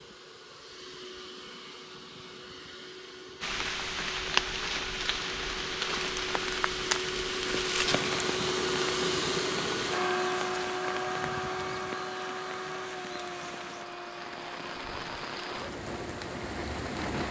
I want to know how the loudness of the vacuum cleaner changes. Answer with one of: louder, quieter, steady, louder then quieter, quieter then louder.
louder then quieter.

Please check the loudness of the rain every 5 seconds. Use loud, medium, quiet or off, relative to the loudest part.
loud, loud, medium, medium.